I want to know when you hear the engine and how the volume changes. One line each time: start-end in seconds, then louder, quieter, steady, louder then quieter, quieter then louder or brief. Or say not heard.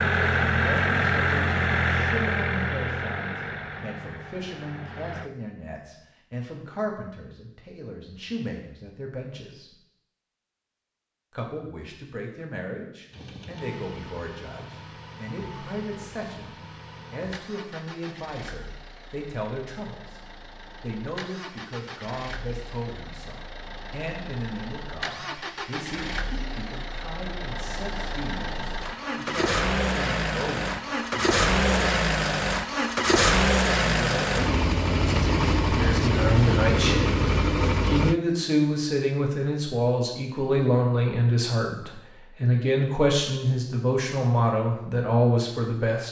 0.0-5.3 quieter
13.1-38.2 louder.